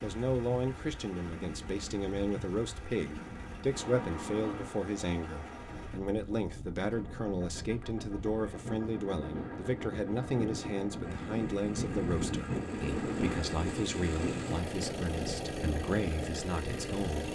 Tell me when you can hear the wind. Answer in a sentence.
The wind can be heard from 0.0 to 17.2 s.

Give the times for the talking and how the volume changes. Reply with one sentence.
You can hear the talking from 0.0 to 17.2 s, at a steady volume.